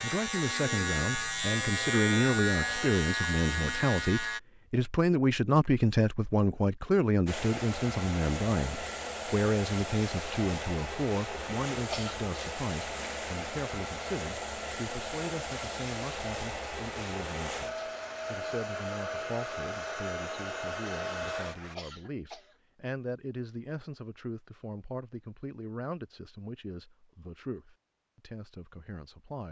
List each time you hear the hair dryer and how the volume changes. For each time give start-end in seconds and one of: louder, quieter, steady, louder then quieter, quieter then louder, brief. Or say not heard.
7.2-21.8 steady.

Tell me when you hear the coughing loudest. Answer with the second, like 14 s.
12 s.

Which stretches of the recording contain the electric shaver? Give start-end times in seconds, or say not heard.
0.0-4.4.